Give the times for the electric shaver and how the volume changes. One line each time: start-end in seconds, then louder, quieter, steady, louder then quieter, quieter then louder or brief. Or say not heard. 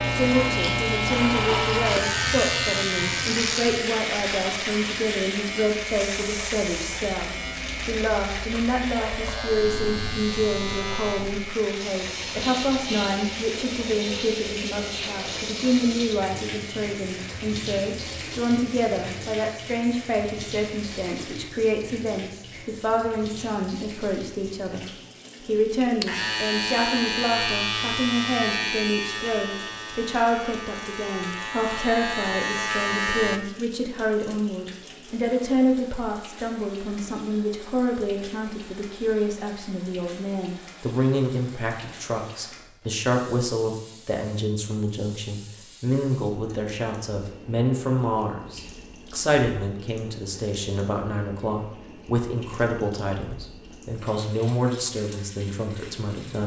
0.0-21.6 quieter
26.0-33.4 quieter then louder.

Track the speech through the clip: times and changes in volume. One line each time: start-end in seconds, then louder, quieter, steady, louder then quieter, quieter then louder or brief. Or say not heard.
0.1-56.4 steady.